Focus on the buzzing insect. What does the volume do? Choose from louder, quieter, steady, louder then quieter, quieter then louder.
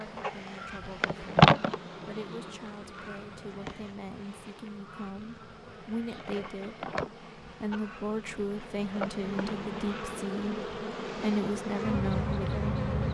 quieter then louder.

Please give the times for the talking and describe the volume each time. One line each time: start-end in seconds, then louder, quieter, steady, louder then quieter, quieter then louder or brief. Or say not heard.
0.0-12.8 louder.